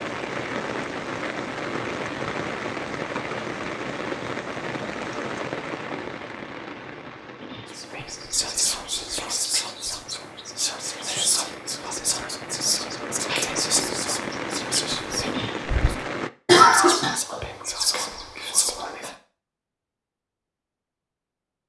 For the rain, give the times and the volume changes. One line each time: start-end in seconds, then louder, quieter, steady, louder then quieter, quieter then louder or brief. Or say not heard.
0.0-16.3 quieter then louder.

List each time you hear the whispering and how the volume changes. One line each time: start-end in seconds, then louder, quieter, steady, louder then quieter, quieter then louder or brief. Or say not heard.
7.7-19.1 steady.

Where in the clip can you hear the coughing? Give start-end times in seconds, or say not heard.
16.4-17.1.